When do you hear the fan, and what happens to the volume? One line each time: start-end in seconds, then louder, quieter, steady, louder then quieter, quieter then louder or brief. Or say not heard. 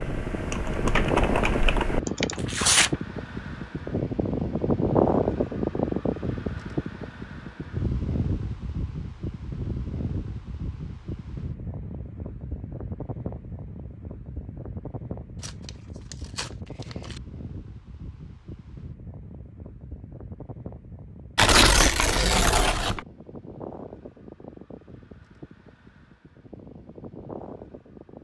0.0-28.1 quieter.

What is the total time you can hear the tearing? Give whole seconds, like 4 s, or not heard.
4 s.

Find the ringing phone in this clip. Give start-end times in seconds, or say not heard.
not heard.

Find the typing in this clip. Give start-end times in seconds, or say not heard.
0.0-2.4.